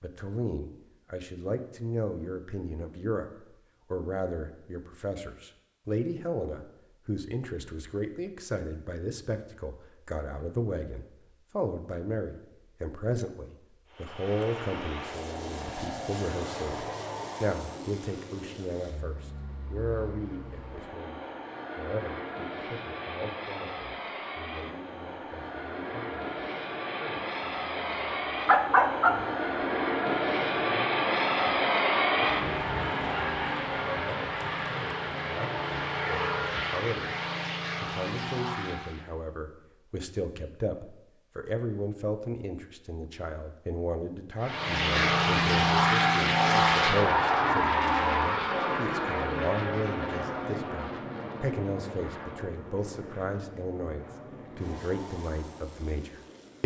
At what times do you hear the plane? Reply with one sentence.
The plane can be heard from 13.8 to 39.1 s and from 44.4 to 56.6 s.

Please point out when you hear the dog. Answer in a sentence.
The dog can be heard from 27.9 to 29.2 s.